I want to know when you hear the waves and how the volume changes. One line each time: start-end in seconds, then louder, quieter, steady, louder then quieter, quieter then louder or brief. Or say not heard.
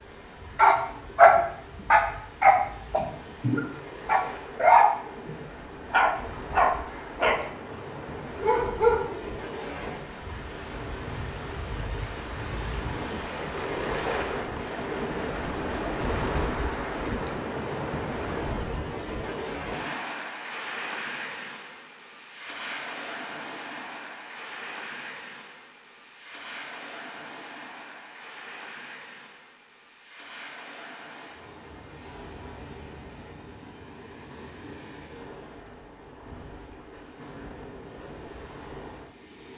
0.0-39.5 louder then quieter.